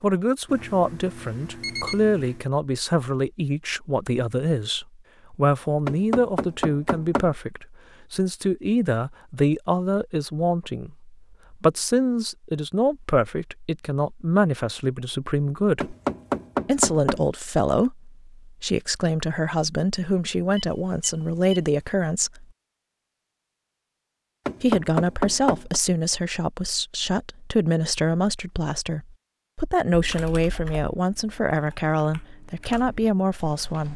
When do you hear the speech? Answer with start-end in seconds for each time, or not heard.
0.0-15.9, 16.6-22.4, 24.6-33.9.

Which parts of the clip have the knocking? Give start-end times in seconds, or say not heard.
5.8-7.3, 15.8-17.3, 24.4-25.8.